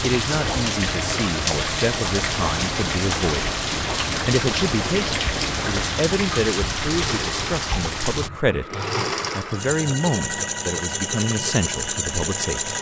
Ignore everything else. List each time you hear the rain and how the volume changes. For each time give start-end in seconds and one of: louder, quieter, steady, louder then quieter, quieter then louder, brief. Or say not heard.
0.0-8.3 steady.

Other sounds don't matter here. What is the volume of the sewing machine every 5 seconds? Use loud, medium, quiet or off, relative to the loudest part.
medium, loud, loud.